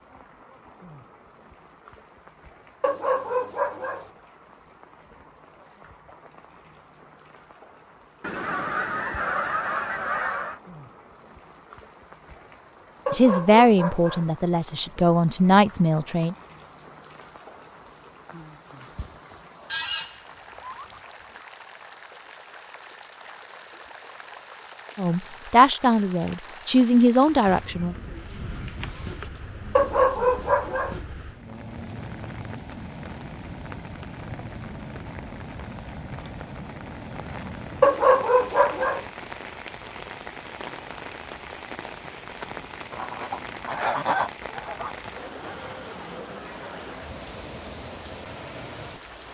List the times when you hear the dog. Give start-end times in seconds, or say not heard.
2.8-4.0, 13.1-14.3, 29.8-30.9, 37.8-39.0.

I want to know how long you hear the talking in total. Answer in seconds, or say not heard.
6 s.